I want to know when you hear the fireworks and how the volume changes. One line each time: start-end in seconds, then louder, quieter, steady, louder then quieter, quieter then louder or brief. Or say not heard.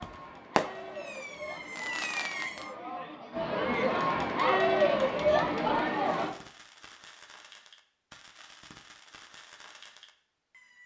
0.0-2.8 brief
5.9-10.8 steady.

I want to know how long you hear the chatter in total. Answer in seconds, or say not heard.
6 s.